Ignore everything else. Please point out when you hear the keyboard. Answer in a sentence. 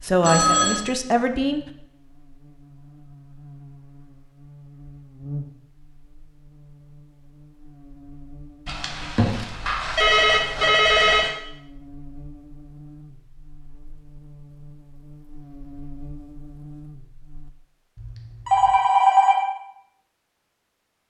The keyboard can't be heard in this clip.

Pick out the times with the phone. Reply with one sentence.
You can hear the phone from 0.2 to 0.8 s, from 8.7 to 11.3 s and from 17.9 to 19.4 s.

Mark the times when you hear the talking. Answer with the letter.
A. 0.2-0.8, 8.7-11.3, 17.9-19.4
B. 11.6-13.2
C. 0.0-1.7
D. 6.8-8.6
C.